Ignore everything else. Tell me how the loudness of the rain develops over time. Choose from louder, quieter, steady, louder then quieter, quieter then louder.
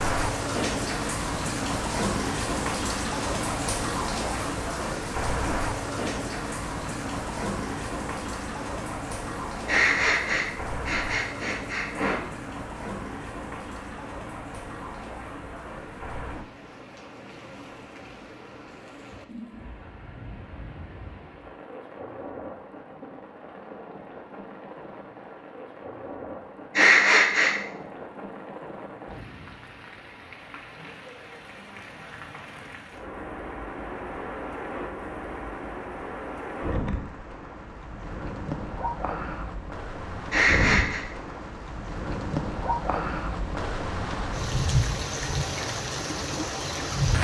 quieter then louder.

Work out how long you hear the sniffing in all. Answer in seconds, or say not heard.
4 s.